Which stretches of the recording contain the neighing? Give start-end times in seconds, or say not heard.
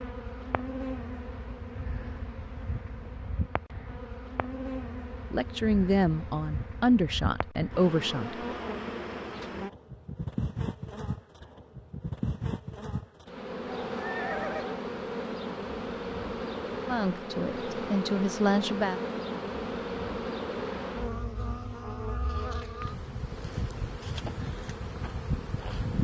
13.8-14.8.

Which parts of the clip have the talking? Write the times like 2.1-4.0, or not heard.
5.3-8.4, 16.9-19.0.